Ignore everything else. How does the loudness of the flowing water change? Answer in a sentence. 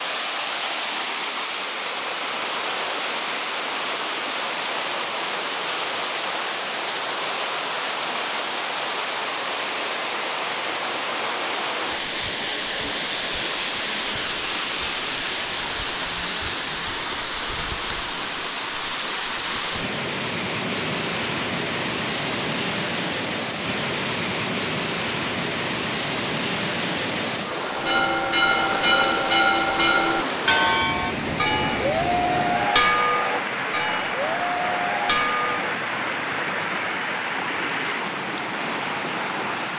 The loudness of the flowing water stays about the same.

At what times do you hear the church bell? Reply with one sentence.
You can hear the church bell from 27.6 to 35.8 s.